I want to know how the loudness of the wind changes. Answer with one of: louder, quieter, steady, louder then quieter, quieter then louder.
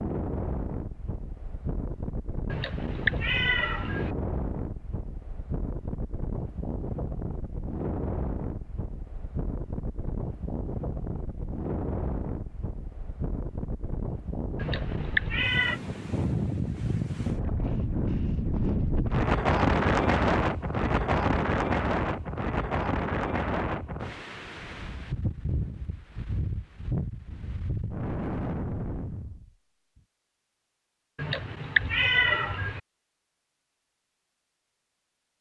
louder then quieter.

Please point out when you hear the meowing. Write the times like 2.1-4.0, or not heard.
2.5-4.2, 14.6-15.8, 31.1-32.8.